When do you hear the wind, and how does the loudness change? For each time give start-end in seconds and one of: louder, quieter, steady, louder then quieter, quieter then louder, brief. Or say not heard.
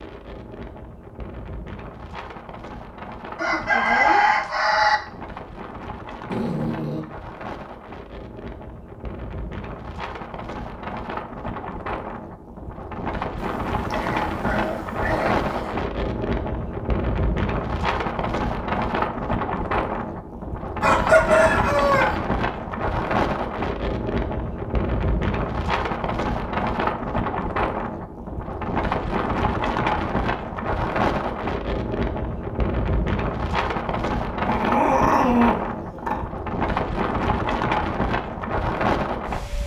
0.0-39.6 louder.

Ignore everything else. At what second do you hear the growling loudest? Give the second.
35 s.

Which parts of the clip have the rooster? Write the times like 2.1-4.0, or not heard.
3.4-5.0, 20.8-22.1.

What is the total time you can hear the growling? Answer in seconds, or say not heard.
5 s.